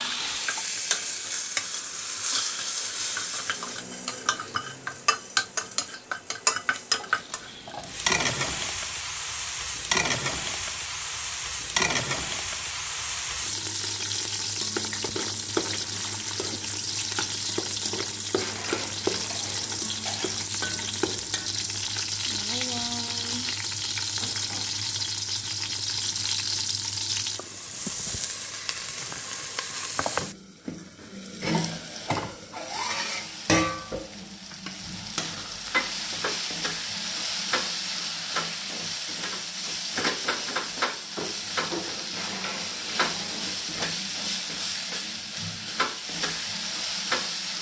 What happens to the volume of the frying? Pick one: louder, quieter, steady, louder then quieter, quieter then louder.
steady.